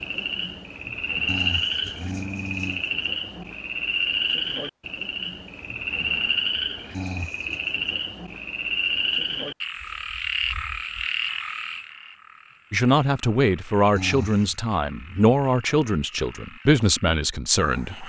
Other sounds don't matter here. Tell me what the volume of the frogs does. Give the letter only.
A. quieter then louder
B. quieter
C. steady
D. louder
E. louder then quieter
B.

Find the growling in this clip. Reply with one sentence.
You can hear the growling from 1.2 to 2.9 s, from 6.9 to 7.6 s and from 13.9 to 14.6 s.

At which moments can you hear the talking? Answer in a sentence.
You can hear the talking from 12.7 to 18.0 s.